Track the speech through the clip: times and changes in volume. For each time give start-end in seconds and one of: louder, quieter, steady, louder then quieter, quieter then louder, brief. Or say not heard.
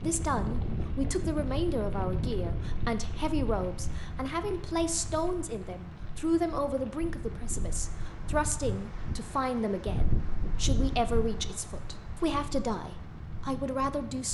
0.0-14.2 steady.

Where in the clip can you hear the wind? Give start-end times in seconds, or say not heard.
0.0-14.2.